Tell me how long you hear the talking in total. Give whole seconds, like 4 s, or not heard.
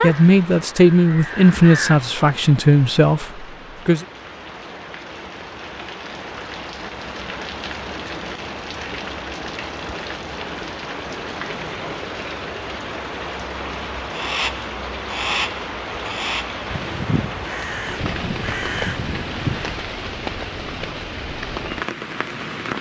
4 s.